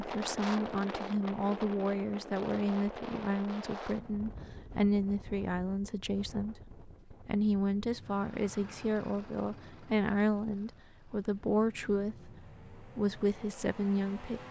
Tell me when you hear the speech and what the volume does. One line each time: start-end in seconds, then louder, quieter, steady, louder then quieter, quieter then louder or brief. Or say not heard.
0.0-14.4 steady.